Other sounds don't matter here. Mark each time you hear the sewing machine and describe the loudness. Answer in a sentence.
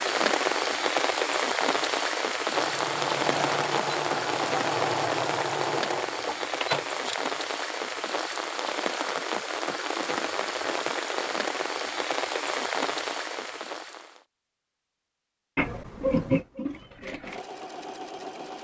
The sewing machine can be heard from 2.5 to 7.2 s, at a steady volume; and briefly from 15.6 to 18.5 s.